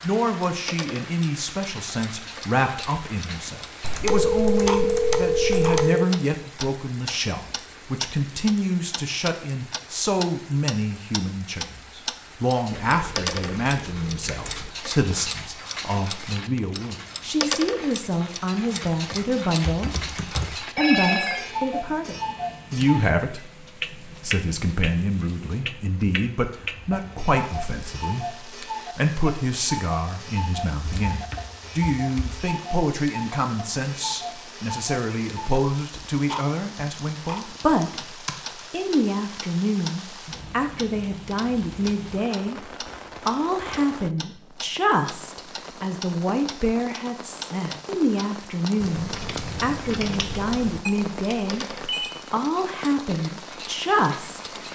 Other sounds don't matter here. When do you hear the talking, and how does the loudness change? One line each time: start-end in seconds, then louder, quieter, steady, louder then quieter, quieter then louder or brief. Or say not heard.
0.0-19.9 steady
20.6-23.4 brief
24.0-42.6 steady
43.2-51.6 steady
52.3-54.5 brief.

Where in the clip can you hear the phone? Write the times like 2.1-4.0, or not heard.
4.0-6.0, 20.8-21.4, 50.9-52.1.